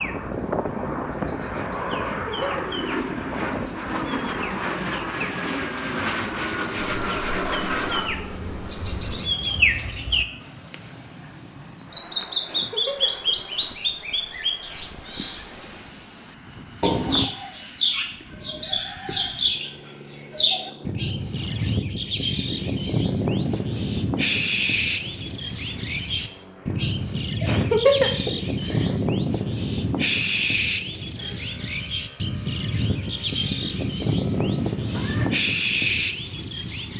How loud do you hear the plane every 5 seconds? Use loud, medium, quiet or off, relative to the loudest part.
loud, loud, quiet, quiet, quiet, quiet, quiet, quiet.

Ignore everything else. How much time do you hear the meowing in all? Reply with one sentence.
You can hear the meowing for 3 seconds altogether.